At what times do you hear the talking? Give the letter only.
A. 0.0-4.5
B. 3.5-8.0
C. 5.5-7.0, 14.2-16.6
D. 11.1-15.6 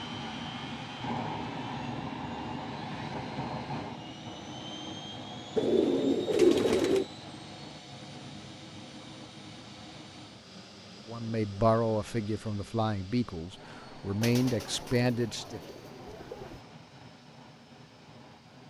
D.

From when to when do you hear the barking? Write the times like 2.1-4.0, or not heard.
not heard.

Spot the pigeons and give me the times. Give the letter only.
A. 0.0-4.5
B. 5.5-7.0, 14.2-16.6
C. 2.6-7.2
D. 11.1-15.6
B.